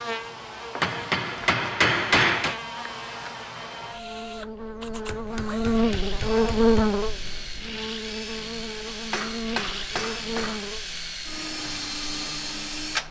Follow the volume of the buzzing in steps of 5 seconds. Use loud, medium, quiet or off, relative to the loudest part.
medium, loud, medium.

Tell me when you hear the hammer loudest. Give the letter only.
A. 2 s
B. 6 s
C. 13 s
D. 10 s
A.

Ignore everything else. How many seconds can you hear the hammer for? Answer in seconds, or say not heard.
5 s.